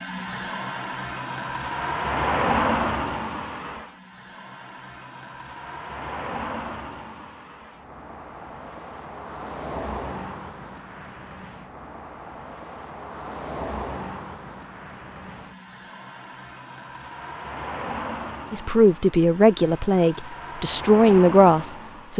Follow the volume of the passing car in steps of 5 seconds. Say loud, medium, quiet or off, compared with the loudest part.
loud, medium, medium, medium, medium.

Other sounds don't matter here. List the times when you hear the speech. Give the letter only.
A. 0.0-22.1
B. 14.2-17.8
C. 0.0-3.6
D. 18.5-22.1
D.